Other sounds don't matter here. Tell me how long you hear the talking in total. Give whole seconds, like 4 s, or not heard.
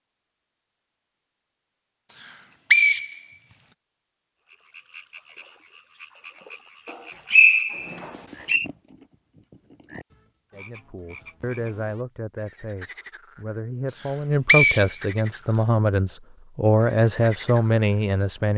8 s.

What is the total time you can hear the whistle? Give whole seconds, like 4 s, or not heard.
4 s.